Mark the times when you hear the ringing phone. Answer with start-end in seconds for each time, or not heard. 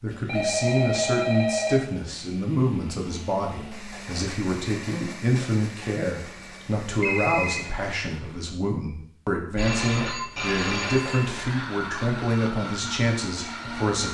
0.2-1.8, 6.2-7.6, 9.6-11.2.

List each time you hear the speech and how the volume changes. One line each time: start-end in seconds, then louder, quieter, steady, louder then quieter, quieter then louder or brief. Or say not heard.
0.0-14.1 steady.